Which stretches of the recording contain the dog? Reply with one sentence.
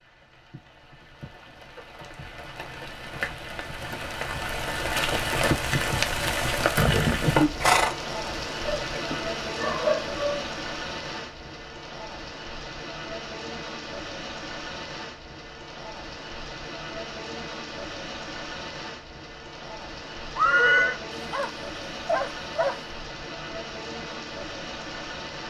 You can hear the dog from 8.7 to 10.4 s and from 21.1 to 22.8 s.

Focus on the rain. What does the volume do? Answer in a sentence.
The loudness of the rain goes up, then down.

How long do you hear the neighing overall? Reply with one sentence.
The neighing can be heard for 2 seconds in total.